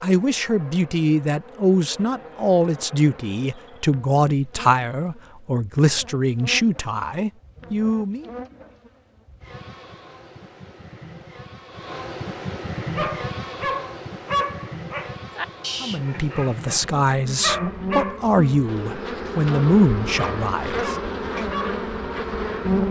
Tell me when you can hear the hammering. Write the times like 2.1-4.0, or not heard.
not heard.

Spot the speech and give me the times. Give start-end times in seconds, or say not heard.
0.0-8.2, 15.8-21.4.